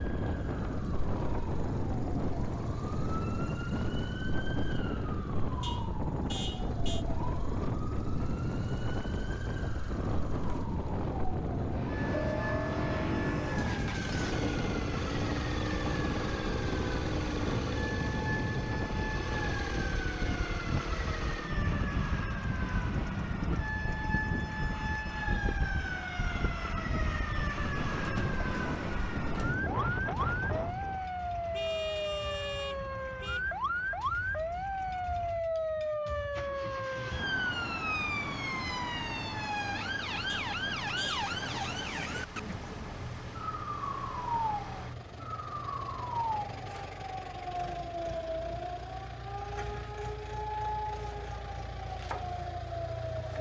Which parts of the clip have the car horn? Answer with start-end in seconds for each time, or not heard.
5.6-7.0, 31.5-33.5, 40.2-41.2.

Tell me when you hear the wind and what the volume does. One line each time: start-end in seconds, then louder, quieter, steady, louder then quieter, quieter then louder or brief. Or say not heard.
0.0-31.1 steady.